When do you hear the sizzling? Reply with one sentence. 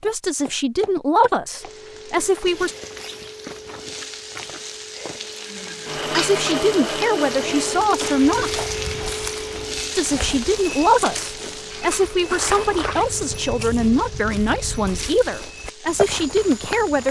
You can hear the sizzling from 1.6 to 17.0 s.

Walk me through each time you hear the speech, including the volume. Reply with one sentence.
The speech can be heard briefly from 0.0 to 2.8 s; briefly from 6.1 to 8.6 s; and from 9.9 to 17.0 s, at a steady volume.